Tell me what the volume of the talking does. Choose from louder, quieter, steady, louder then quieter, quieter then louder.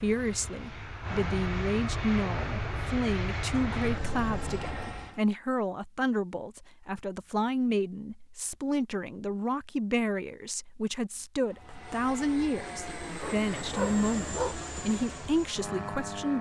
steady.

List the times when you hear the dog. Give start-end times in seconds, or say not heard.
13.2-14.6.